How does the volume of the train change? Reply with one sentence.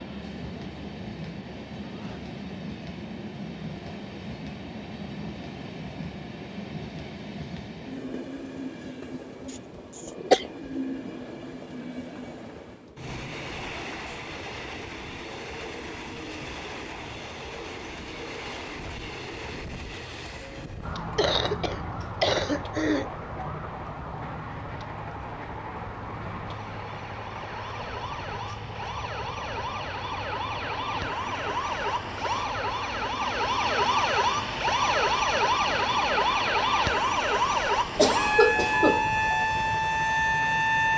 The loudness of the train stays about the same.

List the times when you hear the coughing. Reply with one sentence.
The coughing can be heard from 9.9 to 10.4 s, from 21.1 to 23.1 s and from 38.0 to 39.1 s.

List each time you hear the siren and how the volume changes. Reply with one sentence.
The siren can be heard from 20.8 to 40.9 s, getting louder.